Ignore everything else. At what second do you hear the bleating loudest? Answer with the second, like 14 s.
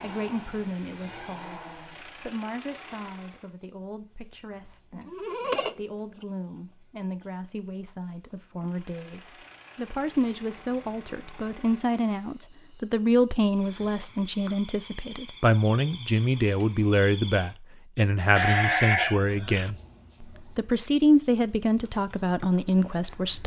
19 s.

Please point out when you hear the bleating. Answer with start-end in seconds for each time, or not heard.
5.0-6.2, 18.4-19.7.